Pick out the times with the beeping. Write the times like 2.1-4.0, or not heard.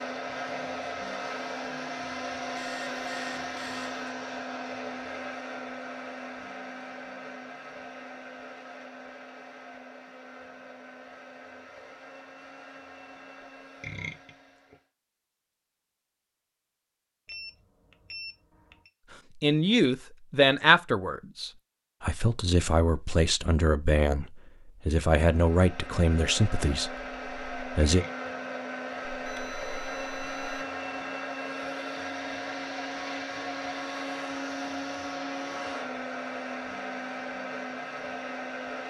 2.5-4.0, 17.2-18.9, 29.2-30.6.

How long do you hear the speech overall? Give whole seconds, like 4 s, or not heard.
9 s.